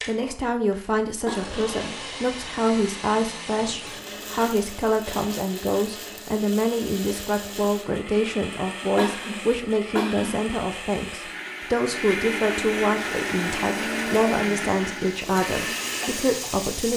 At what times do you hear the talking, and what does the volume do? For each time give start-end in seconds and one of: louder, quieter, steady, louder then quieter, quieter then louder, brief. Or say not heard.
0.1-16.9 steady.